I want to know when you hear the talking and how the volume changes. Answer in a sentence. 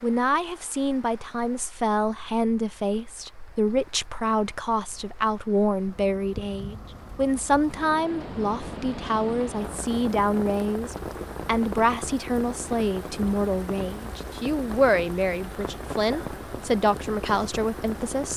The talking can be heard from 0.0 to 18.3 s, at a steady volume.